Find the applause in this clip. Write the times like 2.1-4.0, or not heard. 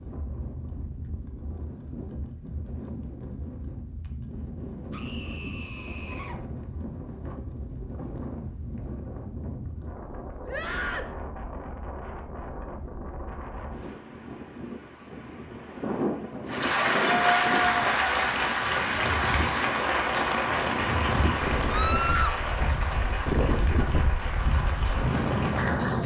16.4-26.0.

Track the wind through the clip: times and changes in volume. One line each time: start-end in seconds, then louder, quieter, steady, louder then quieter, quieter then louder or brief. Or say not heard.
0.0-26.0 louder.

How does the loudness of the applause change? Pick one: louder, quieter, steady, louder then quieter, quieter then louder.
quieter.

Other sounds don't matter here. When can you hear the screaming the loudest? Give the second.
22 s.